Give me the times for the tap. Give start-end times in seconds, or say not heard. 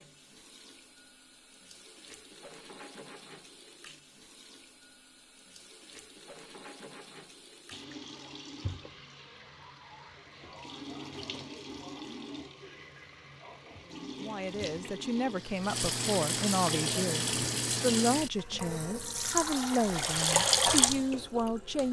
0.0-21.8.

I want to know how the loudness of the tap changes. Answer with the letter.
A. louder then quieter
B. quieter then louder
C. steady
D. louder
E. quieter
D.